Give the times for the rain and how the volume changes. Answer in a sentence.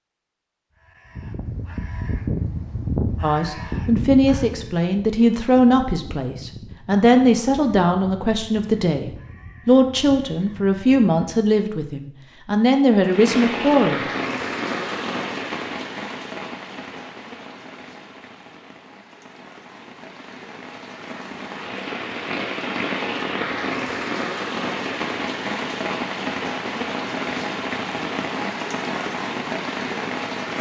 The rain can be heard from 13.0 to 30.5 s, getting quieter then louder.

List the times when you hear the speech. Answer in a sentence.
You can hear the speech from 3.2 to 14.0 s.